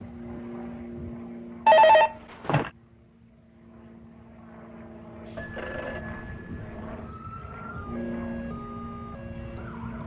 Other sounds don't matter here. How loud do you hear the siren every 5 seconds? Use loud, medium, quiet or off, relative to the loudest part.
off, loud.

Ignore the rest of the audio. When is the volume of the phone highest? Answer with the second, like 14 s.
2 s.